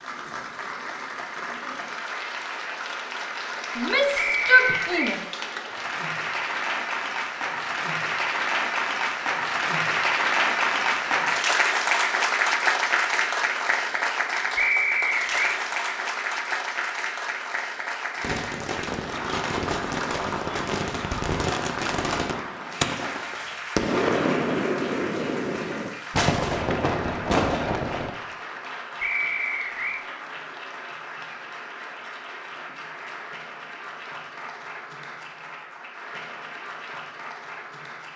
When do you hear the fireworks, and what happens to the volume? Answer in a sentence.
You can hear the fireworks from 18.1 to 28.1 s, getting louder.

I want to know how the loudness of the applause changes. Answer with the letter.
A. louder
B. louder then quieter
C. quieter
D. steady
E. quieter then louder
B.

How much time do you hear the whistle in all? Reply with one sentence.
The whistle can be heard for 3 seconds in total.